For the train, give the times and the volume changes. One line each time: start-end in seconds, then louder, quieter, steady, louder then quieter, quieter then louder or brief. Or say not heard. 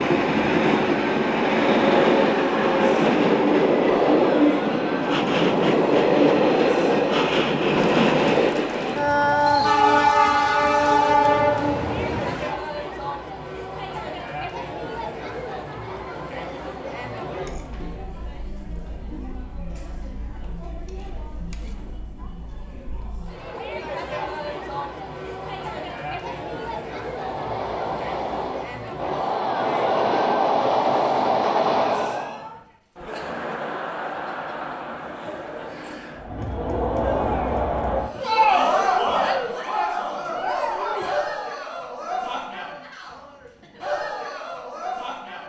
0.0-12.6 steady
27.1-32.4 louder.